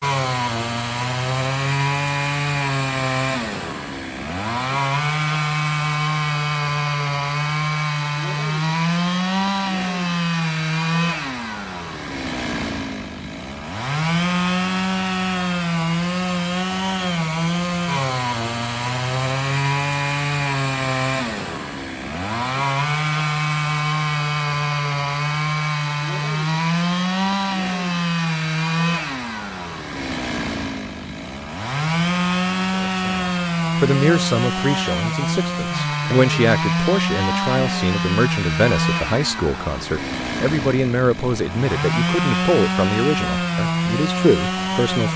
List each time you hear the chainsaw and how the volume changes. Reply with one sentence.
You can hear the chainsaw from 0.0 to 45.1 s, at a steady volume.